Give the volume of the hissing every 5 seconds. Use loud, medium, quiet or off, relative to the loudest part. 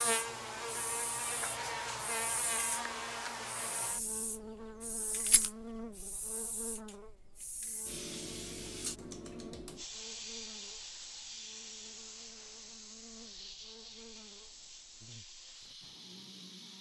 loud, loud, loud, medium.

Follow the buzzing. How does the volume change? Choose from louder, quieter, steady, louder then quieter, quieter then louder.
quieter.